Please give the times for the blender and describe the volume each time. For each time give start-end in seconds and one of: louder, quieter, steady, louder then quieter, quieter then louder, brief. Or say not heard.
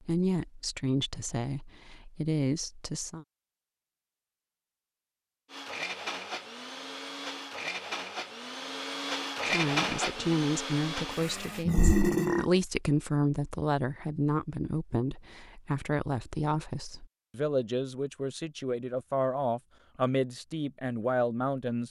5.5-11.7 louder then quieter.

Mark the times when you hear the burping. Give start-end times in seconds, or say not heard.
11.7-12.4.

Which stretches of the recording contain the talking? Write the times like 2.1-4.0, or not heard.
0.0-3.2, 9.4-21.8.